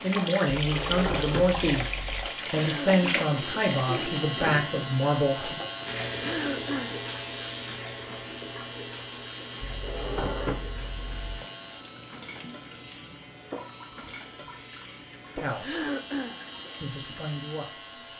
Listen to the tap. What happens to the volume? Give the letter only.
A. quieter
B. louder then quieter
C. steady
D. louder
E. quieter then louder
A.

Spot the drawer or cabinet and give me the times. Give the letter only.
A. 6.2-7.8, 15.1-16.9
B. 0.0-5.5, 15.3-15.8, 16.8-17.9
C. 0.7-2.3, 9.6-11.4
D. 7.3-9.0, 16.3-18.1
C.